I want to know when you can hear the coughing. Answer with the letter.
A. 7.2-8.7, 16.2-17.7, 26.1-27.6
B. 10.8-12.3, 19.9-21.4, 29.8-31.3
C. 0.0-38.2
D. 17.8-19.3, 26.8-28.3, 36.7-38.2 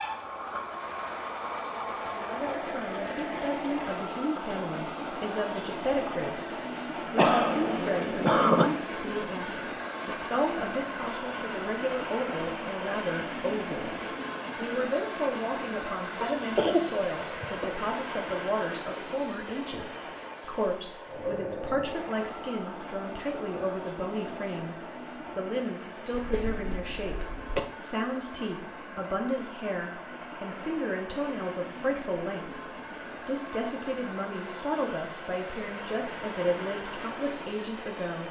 A.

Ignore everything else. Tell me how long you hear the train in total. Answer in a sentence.
The train can be heard for 38 seconds in total.